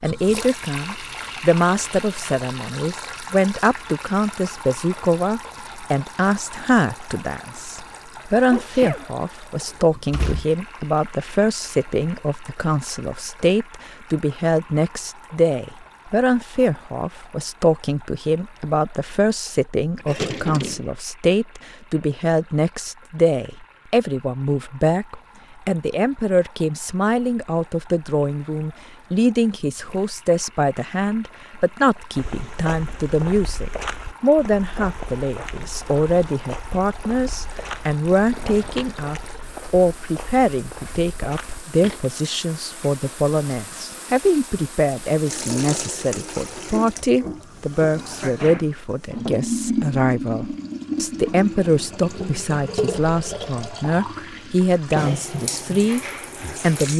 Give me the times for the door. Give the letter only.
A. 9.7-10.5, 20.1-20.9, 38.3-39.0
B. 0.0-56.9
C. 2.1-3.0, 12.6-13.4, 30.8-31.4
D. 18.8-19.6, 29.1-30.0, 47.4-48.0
A.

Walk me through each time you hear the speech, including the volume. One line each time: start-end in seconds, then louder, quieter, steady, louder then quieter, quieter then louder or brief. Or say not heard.
0.0-56.9 steady.